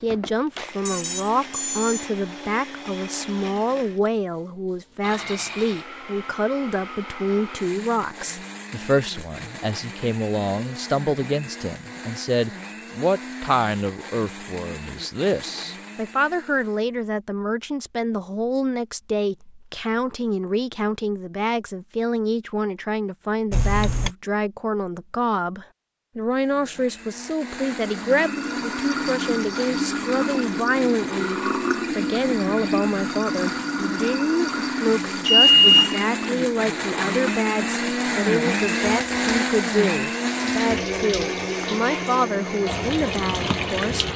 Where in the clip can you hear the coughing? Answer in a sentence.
You can't hear the coughing here.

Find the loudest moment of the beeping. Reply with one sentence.
The loudest moment of the beeping is at 36 seconds.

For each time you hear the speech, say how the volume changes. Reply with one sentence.
You can hear the speech from 0.0 to 44.0 s, at a steady volume.